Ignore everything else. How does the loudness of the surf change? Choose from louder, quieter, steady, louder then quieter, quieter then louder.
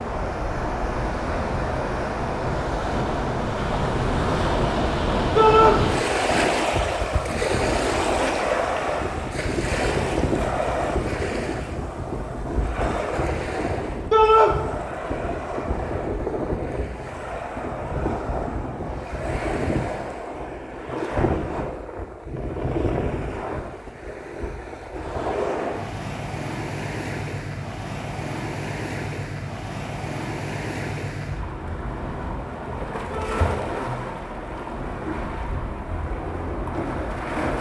quieter.